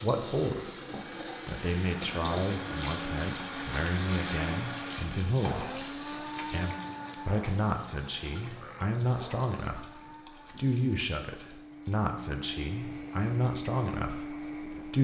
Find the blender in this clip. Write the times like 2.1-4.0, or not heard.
0.0-7.7, 9.0-14.9.